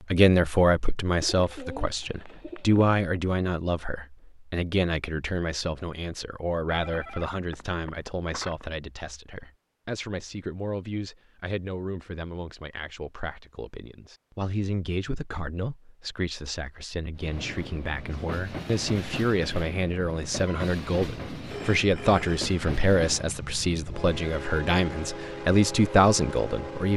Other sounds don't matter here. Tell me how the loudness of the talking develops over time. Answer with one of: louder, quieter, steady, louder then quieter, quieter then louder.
quieter then louder.